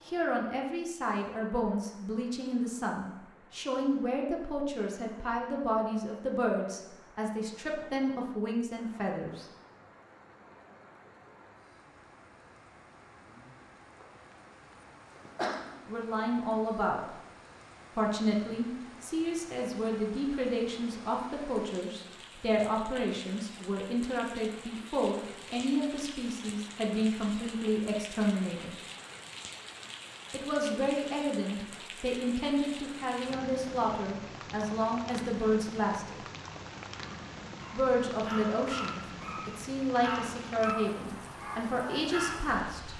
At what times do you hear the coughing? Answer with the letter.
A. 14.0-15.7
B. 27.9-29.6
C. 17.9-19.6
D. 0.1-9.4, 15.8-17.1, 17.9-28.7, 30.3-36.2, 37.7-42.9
A.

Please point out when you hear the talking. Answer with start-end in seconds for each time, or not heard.
0.1-9.4, 15.8-17.1, 17.9-28.7, 30.3-36.2, 37.7-42.9.